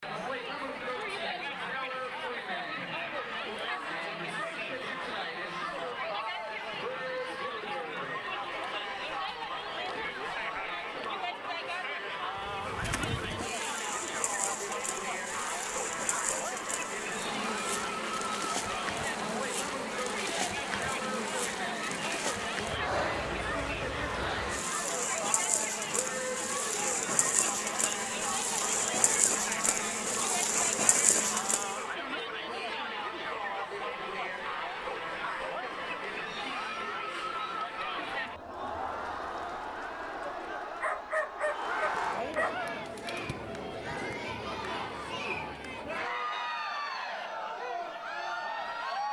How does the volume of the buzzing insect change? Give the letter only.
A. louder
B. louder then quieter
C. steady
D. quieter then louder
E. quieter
A.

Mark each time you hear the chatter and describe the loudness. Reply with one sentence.
The chatter can be heard from 0.0 to 49.0 s, at a steady volume.